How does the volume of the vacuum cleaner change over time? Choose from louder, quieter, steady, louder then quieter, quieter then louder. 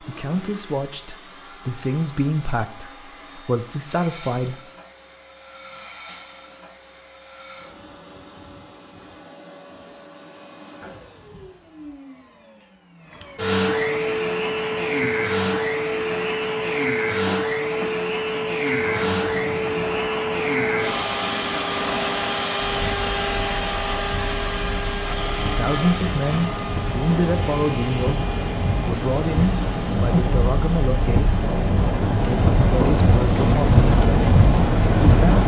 louder then quieter.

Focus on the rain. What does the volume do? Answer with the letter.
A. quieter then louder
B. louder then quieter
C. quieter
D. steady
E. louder
E.